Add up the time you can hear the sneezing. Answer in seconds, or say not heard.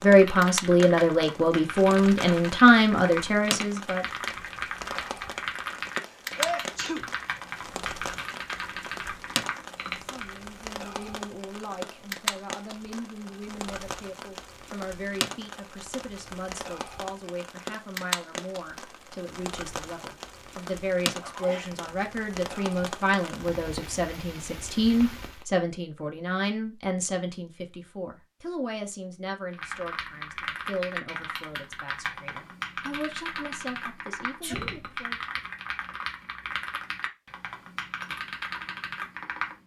2 s.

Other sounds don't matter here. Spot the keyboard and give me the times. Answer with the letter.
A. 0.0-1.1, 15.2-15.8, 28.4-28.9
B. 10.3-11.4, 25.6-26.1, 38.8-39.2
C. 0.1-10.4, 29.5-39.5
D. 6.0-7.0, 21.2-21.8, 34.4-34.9
C.